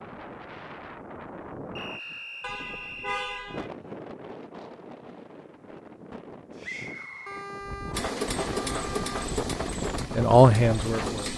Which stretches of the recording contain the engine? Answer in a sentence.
The engine can be heard from 7.9 to 11.3 s.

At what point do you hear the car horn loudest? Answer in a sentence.
The volume of the car horn peaks at 3 seconds.